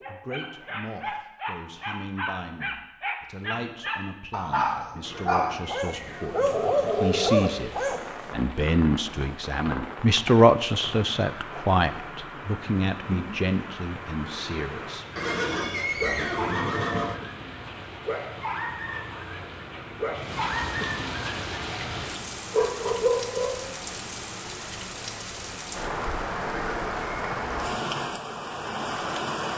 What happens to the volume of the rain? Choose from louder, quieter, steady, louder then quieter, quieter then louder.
louder.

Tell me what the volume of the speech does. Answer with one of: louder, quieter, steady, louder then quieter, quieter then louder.
louder then quieter.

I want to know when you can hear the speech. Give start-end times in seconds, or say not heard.
0.1-15.1.